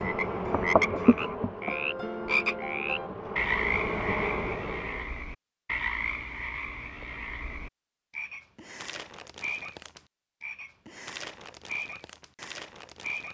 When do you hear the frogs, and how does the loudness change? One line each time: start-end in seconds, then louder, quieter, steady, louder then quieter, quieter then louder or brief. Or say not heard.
0.0-13.3 quieter.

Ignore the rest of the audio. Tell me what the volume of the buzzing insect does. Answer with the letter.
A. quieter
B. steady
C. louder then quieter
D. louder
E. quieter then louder
E.